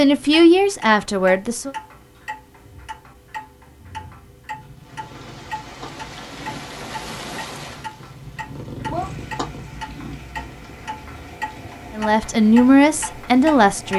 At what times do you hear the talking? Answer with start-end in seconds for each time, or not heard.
0.0-1.8, 11.9-13.9.